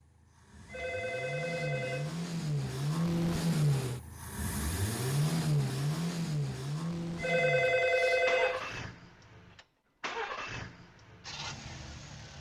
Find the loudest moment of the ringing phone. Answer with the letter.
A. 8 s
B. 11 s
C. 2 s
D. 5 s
A.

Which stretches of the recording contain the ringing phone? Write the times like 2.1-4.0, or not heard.
0.7-2.2, 7.2-8.8.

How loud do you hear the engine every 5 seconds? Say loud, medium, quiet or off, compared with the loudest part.
loud, loud, medium.